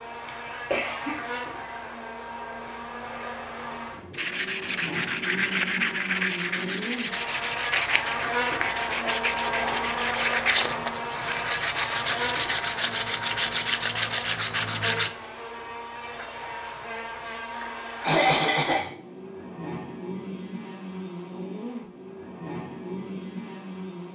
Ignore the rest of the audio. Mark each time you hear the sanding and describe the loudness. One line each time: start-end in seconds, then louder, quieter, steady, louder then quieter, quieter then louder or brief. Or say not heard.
4.1-15.1 steady.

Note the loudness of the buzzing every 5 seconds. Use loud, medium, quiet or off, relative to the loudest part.
medium, loud, loud, medium, medium.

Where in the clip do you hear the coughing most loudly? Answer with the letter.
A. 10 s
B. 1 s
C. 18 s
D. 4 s
C.